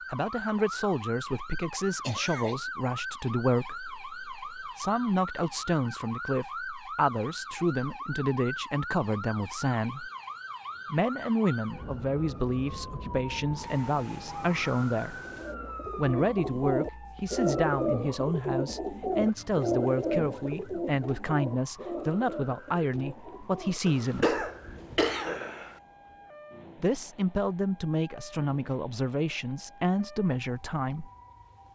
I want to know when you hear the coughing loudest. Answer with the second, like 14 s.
24 s.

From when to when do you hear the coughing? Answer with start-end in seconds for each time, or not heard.
2.0-2.5, 23.9-25.8.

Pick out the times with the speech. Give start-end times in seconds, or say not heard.
0.1-10.1, 10.9-15.2, 15.9-24.4, 26.8-31.1.